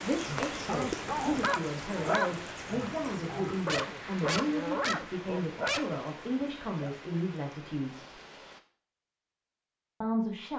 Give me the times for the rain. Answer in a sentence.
The rain can be heard from 0.0 to 8.6 s.